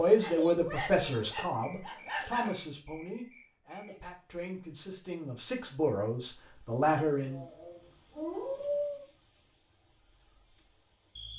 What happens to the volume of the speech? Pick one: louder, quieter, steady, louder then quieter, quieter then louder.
quieter then louder.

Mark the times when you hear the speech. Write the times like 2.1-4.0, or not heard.
0.0-7.5.